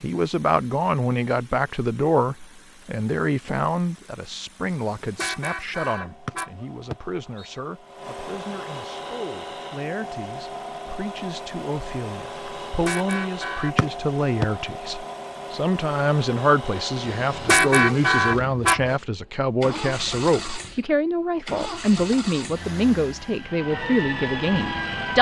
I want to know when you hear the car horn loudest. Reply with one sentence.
The volume of the car horn peaks at 18 seconds.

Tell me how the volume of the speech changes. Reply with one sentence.
The loudness of the speech goes down, then up.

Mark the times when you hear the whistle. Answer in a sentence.
You can hear the whistle from 6.2 to 7.5 s and from 13.8 to 14.4 s.